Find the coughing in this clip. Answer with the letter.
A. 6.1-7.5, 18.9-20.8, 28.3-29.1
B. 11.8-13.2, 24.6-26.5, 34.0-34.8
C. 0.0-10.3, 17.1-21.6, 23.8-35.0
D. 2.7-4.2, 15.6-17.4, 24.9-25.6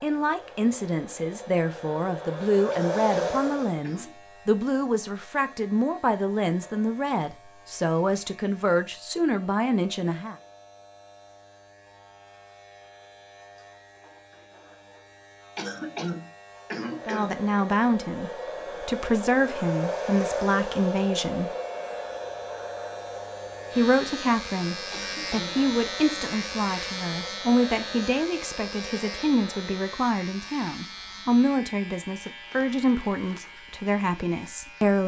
D.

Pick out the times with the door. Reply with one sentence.
You can't hear the door here.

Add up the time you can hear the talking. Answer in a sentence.
You can hear the talking for 26 seconds altogether.